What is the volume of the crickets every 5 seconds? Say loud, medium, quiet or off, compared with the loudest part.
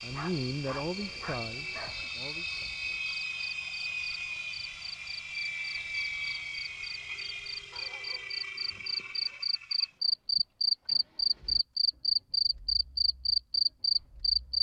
quiet, medium, loud.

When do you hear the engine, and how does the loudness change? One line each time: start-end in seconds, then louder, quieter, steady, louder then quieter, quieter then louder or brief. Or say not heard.
0.0-14.5 quieter.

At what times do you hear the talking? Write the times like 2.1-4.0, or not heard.
0.0-2.5.